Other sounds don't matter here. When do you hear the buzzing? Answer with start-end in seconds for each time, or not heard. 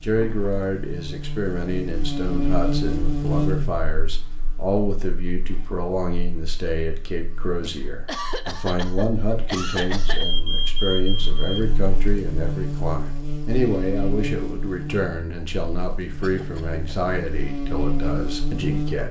0.0-19.0.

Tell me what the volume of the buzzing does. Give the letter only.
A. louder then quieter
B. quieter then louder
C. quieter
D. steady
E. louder
B.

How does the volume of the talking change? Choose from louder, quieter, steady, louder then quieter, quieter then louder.
steady.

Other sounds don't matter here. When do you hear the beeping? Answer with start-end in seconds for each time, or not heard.
10.2-11.7.